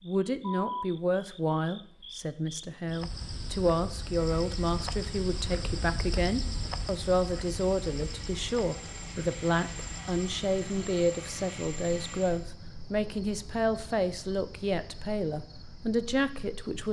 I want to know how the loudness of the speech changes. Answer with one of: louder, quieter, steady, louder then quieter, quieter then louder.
steady.